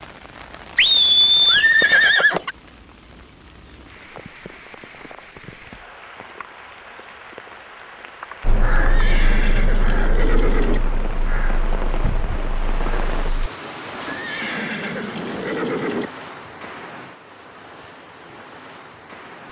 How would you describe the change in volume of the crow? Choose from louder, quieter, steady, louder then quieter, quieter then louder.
quieter.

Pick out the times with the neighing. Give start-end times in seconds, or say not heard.
0.8-2.5, 8.8-10.8, 14.1-16.1.